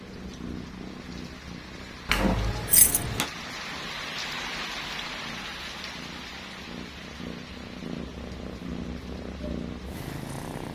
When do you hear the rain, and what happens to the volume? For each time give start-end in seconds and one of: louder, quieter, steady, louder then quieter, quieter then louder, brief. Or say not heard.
0.0-10.7 louder then quieter.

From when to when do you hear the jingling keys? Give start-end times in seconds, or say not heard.
2.0-3.3.